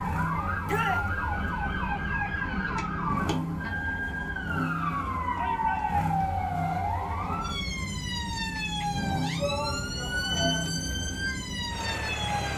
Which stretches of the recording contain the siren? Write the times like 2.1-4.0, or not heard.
0.0-12.5.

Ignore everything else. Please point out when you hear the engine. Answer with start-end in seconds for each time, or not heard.
0.0-12.5.